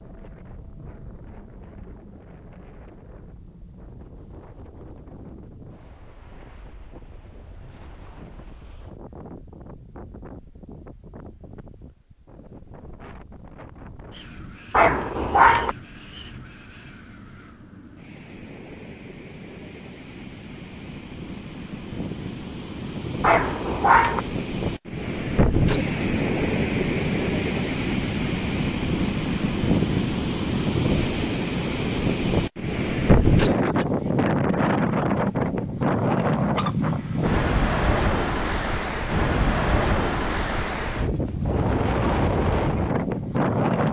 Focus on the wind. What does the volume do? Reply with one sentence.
The loudness of the wind goes up.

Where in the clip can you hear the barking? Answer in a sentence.
You can hear the barking from 14.7 to 15.8 s and from 23.2 to 24.2 s.